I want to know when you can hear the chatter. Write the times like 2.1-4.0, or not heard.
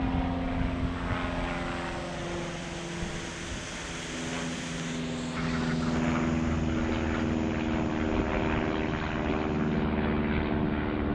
not heard.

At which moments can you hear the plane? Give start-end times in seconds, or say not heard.
0.0-11.0.